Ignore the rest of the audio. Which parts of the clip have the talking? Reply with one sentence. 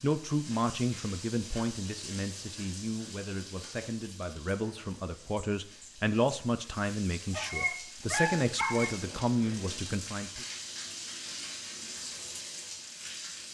The talking can be heard from 0.0 to 10.4 s.